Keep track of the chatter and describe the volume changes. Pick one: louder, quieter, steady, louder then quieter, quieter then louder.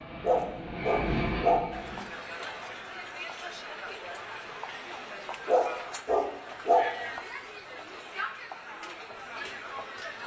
steady.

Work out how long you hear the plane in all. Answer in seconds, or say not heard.
2 s.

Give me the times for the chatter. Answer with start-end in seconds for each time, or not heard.
1.7-10.2.